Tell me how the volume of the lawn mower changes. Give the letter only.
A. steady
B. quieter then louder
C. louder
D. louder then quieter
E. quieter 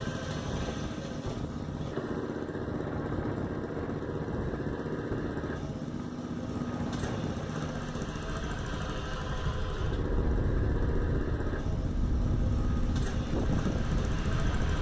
A.